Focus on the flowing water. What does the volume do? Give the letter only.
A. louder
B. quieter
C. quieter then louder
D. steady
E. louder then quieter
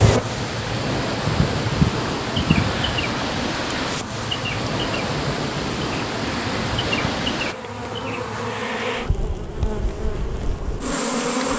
D.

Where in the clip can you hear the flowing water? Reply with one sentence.
The flowing water can be heard from 0.0 to 7.5 s.